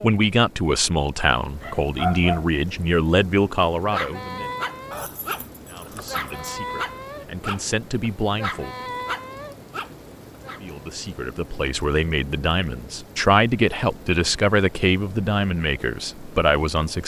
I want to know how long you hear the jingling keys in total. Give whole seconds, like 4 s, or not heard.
2 s.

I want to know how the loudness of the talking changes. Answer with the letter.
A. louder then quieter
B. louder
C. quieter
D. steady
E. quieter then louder
E.